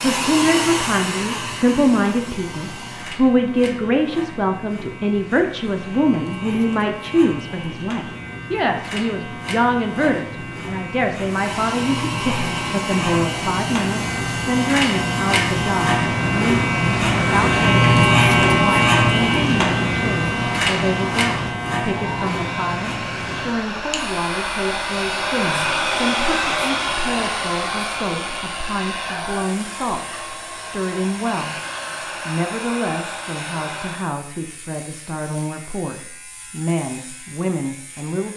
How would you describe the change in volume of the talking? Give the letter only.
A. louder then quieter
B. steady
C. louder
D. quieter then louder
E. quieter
E.